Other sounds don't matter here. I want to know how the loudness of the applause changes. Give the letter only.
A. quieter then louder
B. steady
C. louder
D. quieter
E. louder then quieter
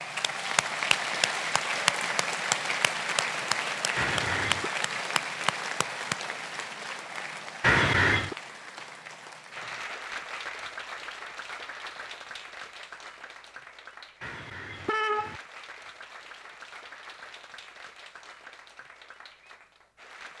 D.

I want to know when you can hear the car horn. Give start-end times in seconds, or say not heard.
4.0-4.7, 7.6-8.3, 14.2-15.4.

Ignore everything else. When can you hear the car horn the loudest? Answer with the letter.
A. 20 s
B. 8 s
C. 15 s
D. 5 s
B.